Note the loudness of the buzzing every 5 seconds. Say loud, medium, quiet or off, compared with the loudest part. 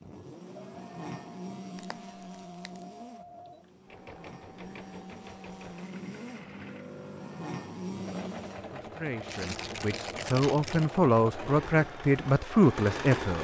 loud, loud, off.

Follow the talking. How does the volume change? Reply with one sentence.
The volume of the talking goes up.